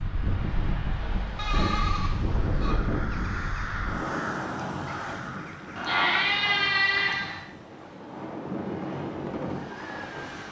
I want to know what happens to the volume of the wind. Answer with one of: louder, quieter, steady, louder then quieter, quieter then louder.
quieter then louder.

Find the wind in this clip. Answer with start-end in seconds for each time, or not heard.
0.0-10.4.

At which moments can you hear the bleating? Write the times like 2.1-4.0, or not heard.
1.4-2.8, 5.8-7.5.